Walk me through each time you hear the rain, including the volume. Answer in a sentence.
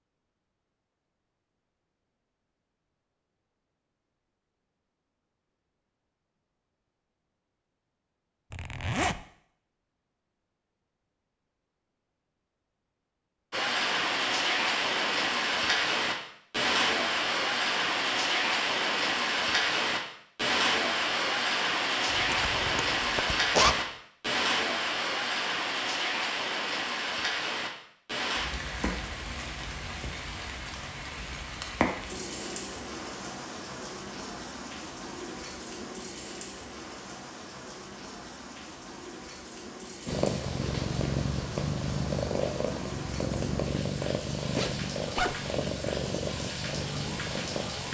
The rain can be heard from 13.5 to 47.8 s, getting quieter.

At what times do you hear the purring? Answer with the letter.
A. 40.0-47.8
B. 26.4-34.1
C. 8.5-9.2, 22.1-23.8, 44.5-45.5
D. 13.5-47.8
A.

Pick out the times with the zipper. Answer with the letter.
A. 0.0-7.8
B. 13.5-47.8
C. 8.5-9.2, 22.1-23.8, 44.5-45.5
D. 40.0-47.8
C.